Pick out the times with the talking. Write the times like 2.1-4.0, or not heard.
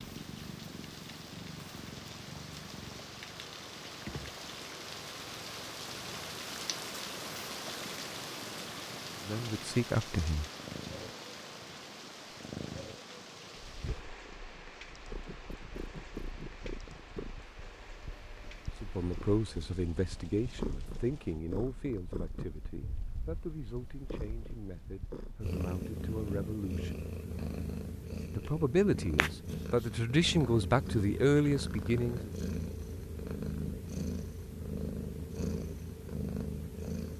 9.2-10.4, 18.8-27.1, 28.3-32.3.